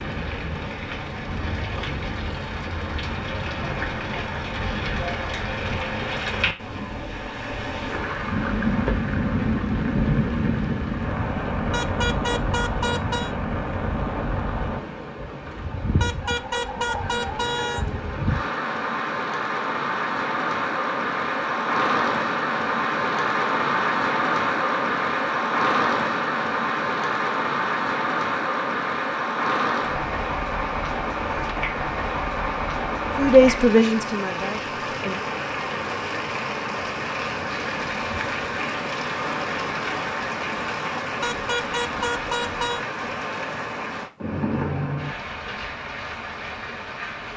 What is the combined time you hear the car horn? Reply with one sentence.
The car horn can be heard for 5 seconds in total.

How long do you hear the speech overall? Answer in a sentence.
You can hear the speech for 2 seconds altogether.